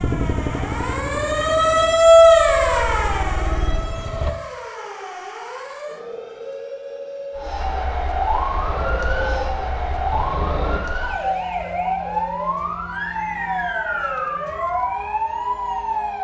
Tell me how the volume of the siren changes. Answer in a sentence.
The volume of the siren goes down, then up.